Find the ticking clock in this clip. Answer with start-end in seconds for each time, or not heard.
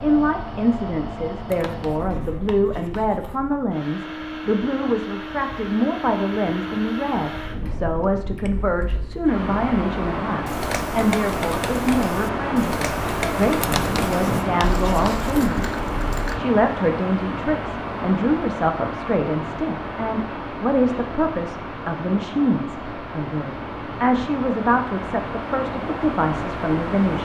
not heard.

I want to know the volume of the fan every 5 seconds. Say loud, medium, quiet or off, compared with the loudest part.
medium, medium, loud, loud, medium, loud.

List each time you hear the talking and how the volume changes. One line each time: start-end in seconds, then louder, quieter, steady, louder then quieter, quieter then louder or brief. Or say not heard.
0.0-27.1 steady.